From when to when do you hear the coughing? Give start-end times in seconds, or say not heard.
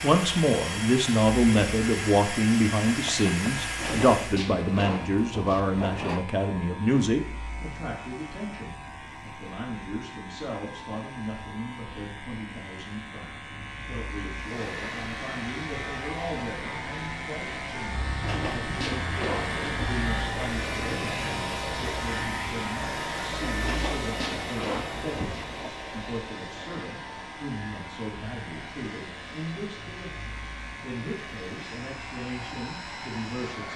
not heard.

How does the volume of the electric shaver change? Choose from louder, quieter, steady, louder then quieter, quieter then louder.
louder then quieter.